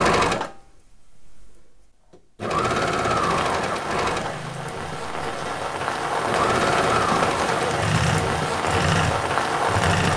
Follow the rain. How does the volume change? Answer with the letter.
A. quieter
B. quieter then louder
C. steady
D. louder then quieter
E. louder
E.